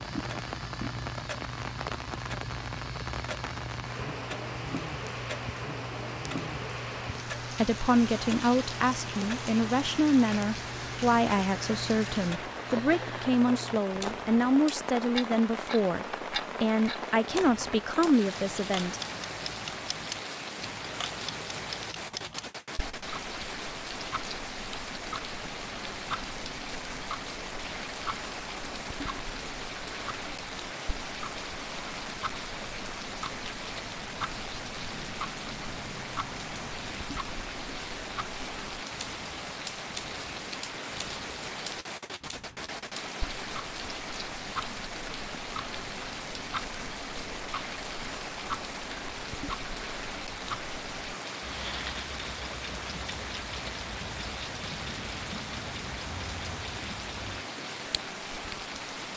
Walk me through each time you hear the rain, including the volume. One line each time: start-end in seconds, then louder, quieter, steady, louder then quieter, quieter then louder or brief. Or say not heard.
0.0-59.1 steady.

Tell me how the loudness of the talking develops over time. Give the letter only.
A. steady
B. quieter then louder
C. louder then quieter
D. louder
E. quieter
A.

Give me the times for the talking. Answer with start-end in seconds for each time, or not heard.
7.5-19.0.